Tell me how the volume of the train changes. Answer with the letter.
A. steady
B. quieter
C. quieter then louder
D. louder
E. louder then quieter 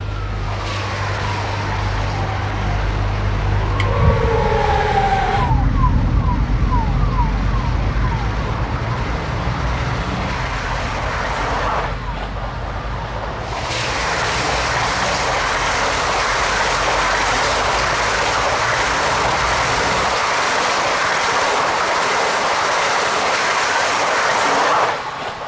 D.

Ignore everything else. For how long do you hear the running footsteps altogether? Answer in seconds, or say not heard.
not heard.